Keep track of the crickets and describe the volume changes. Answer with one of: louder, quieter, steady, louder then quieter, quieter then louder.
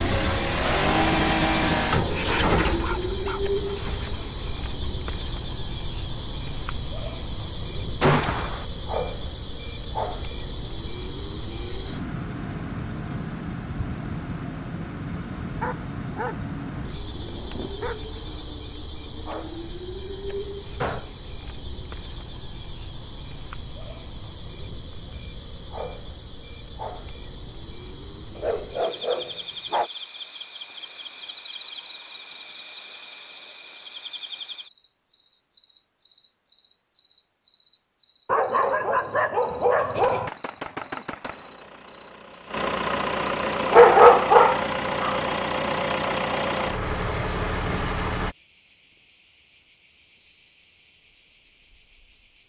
quieter.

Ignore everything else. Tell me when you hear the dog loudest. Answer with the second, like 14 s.
44 s.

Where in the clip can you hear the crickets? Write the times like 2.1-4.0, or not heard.
0.0-52.4.